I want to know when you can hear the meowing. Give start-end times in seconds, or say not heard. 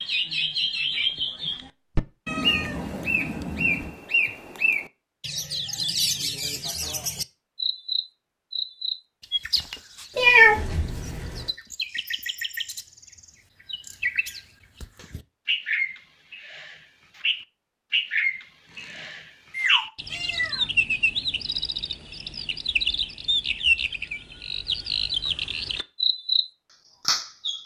2.2-4.0, 10.2-11.4, 18.7-20.6.